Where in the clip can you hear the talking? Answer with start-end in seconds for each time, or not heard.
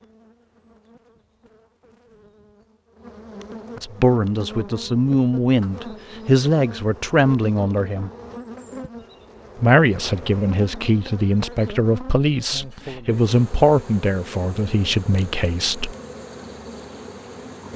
3.8-8.1, 9.6-15.9.